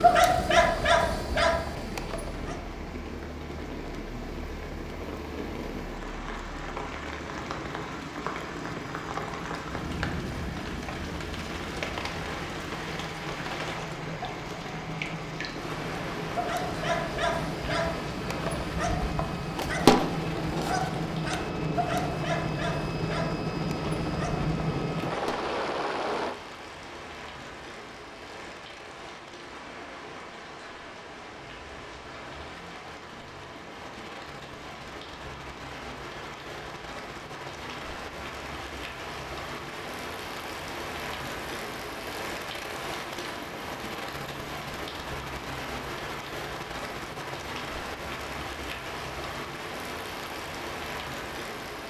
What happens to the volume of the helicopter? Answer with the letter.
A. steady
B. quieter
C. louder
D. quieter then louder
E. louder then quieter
C.